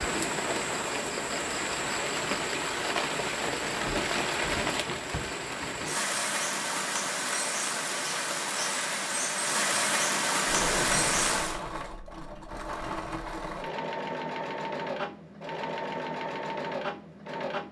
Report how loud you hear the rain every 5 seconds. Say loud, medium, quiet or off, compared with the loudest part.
loud, loud, loud, off.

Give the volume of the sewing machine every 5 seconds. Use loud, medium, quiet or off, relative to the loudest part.
off, off, loud, loud.